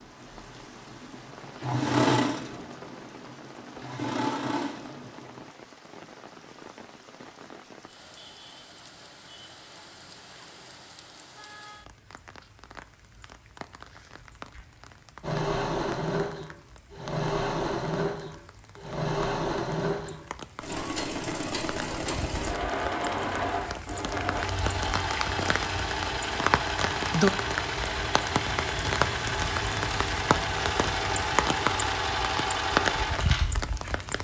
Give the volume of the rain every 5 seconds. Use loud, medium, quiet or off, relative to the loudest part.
quiet, quiet, quiet, quiet, medium, loud, loud.